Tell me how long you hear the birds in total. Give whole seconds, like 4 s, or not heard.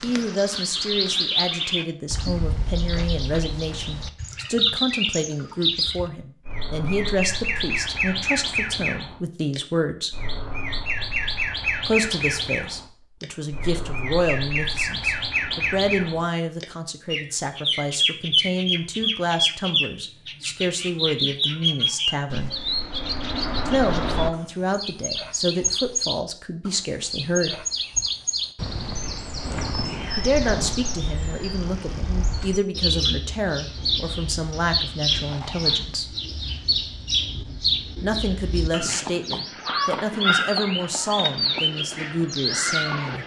43 s.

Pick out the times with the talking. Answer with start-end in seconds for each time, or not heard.
0.0-10.1, 11.8-22.5, 23.6-27.6, 30.1-36.1, 37.4-43.2.